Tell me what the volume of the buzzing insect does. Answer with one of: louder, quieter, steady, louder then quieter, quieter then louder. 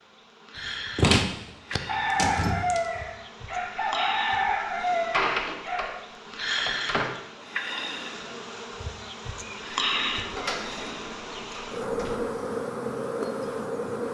louder.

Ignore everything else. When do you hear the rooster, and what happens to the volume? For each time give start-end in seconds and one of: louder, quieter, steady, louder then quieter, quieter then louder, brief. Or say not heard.
1.9-5.9 quieter then louder.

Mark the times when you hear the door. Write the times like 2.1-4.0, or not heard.
0.9-2.8, 4.9-7.2, 9.9-12.3.